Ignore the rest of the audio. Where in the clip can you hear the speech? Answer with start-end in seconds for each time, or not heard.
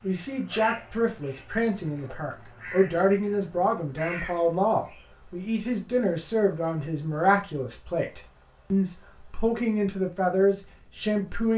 0.0-11.5.